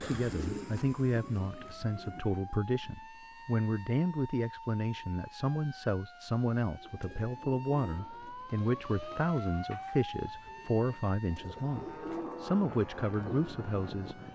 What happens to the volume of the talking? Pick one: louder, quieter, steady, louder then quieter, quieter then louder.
steady.